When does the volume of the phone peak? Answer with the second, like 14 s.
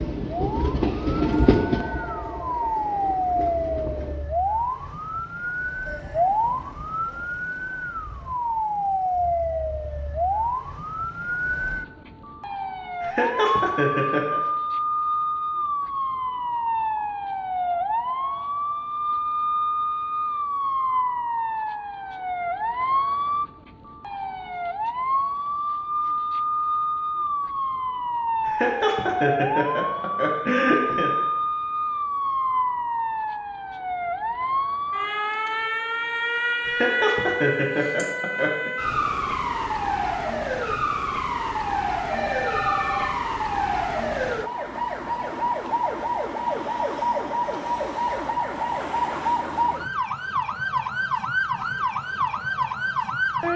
43 s.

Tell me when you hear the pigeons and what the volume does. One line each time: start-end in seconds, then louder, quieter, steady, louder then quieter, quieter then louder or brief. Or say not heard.
not heard.